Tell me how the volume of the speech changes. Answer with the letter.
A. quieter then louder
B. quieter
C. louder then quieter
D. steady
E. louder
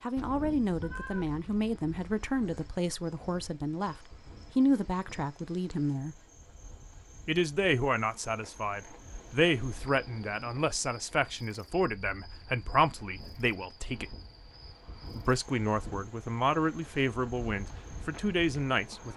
D.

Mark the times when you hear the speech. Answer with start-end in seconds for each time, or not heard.
0.0-6.2, 7.2-14.2, 15.2-19.1.